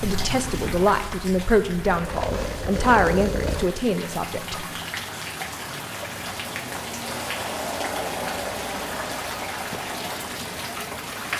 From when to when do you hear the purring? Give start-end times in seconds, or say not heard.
0.0-3.7.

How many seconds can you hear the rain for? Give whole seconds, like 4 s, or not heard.
11 s.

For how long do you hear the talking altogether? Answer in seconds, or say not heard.
5 s.